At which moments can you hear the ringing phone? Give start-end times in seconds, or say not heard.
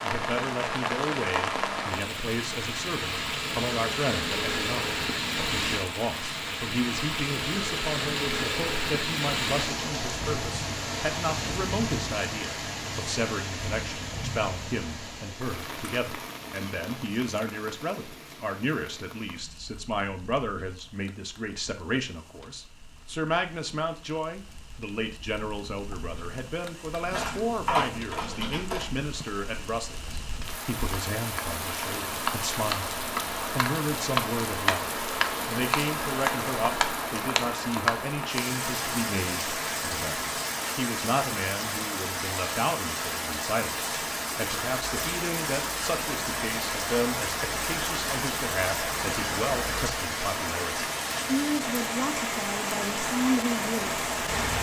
not heard.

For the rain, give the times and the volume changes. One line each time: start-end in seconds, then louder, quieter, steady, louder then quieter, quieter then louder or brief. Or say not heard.
0.0-54.5 quieter then louder.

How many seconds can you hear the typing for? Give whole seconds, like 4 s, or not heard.
2 s.